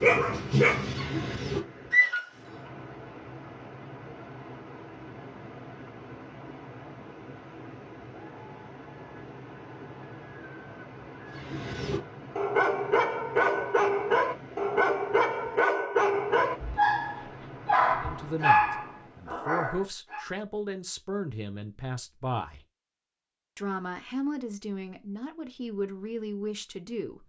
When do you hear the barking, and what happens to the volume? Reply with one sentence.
You can hear the barking briefly from 0.0 to 2.2 s; and from 11.3 to 20.2 s, at a steady volume.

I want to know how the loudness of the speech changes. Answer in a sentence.
The loudness of the speech stays about the same.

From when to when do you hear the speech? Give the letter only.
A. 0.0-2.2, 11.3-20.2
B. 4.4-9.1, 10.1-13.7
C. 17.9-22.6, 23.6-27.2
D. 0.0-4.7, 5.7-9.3
C.